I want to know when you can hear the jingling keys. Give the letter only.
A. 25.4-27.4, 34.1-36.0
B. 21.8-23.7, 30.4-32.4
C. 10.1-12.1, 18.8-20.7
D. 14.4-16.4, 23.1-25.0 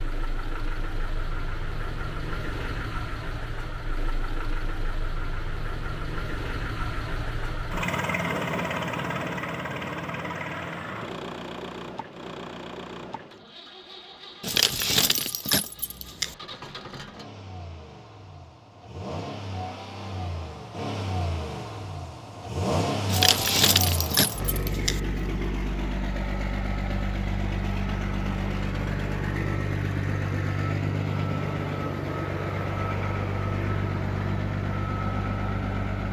D.